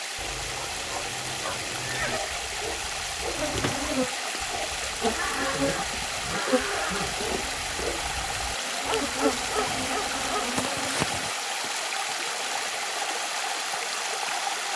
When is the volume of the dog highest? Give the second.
9 s.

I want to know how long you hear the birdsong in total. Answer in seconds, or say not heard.
not heard.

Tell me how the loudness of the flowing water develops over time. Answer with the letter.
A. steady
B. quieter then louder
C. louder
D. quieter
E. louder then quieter
A.